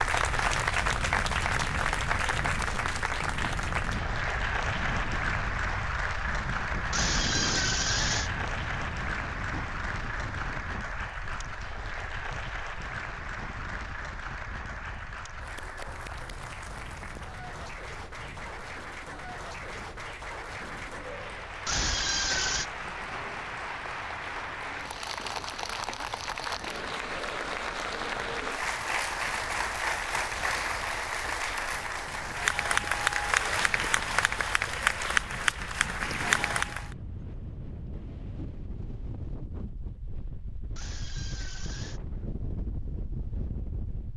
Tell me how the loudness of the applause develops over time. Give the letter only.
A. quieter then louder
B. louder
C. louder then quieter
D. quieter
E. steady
A.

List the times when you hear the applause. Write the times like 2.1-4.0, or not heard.
0.0-37.0.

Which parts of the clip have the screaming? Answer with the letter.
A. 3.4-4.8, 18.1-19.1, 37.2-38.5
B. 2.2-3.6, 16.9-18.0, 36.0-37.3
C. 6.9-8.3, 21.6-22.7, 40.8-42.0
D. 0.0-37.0
C.